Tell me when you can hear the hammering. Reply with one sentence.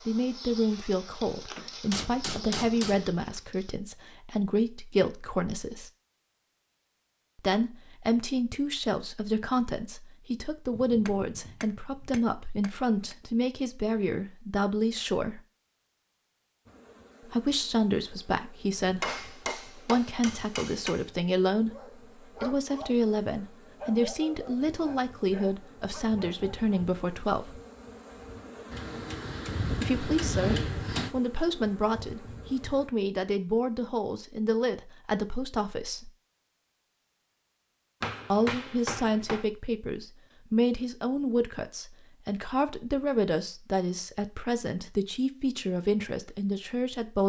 The hammering can be heard from 1.6 to 3.1 s, from 10.7 to 13.2 s, from 19.0 to 21.1 s, from 28.7 to 31.1 s and from 38.0 to 39.5 s.